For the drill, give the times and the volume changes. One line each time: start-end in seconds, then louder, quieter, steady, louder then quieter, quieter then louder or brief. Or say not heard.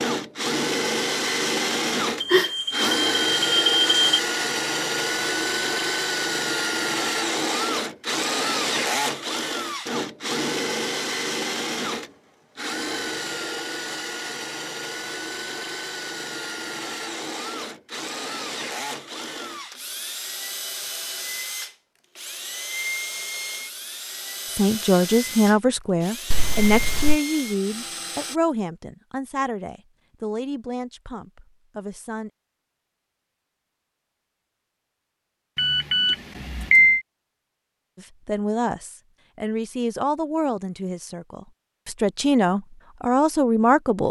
0.0-28.4 quieter.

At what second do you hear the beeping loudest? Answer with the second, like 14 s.
37 s.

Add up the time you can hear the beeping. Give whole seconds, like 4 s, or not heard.
4 s.